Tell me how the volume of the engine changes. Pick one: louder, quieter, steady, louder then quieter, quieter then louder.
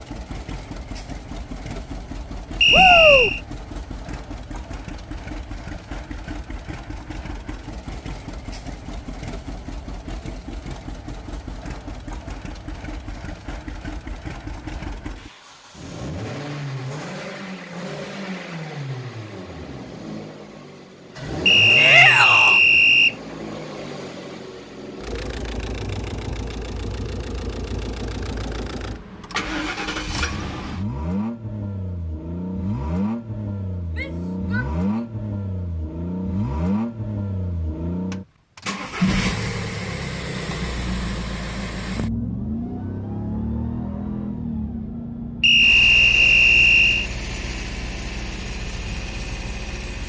louder.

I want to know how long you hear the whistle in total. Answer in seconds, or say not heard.
4 s.